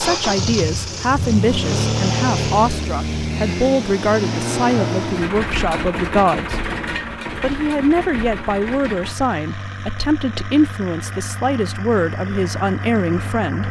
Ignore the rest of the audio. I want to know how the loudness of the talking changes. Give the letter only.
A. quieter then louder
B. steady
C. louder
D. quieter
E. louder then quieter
B.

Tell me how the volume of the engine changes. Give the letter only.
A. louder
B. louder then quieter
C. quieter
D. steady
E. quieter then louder
C.